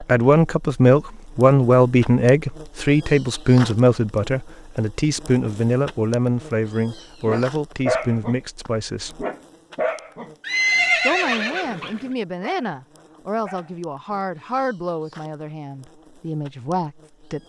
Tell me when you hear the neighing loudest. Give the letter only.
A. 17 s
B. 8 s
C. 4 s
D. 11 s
D.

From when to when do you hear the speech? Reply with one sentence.
You can hear the speech from 0.0 to 9.2 s and from 11.0 to 17.4 s.